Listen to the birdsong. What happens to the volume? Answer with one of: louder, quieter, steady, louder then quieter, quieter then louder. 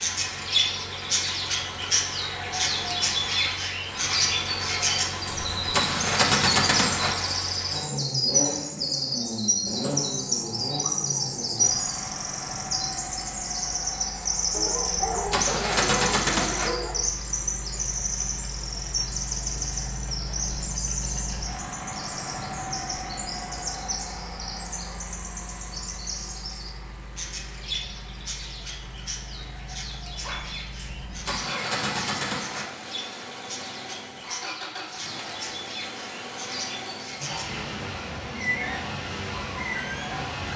quieter.